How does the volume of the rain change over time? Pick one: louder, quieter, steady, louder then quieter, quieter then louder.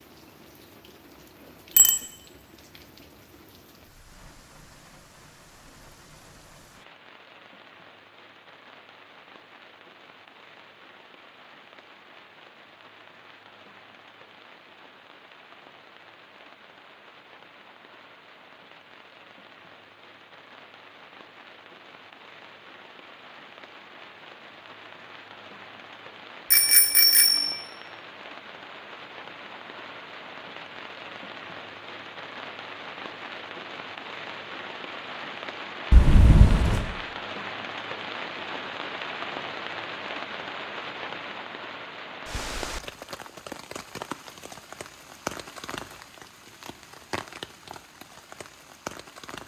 louder.